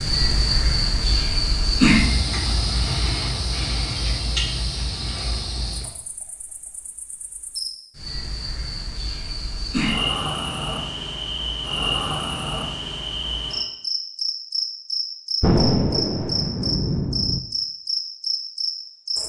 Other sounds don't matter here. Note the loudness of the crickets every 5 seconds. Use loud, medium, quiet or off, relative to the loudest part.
loud, medium, loud, loud.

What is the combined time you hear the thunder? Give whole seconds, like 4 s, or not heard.
2 s.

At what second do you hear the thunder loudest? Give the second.
16 s.